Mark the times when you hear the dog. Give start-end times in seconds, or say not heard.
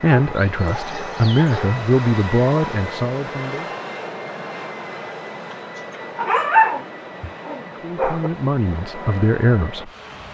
0.1-1.8, 6.2-8.3.